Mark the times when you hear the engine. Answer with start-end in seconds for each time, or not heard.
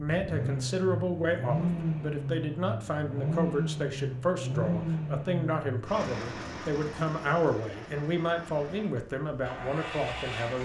0.0-10.5.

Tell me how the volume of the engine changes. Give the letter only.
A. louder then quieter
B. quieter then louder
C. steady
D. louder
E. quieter
E.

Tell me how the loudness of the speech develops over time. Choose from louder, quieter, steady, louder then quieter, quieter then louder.
steady.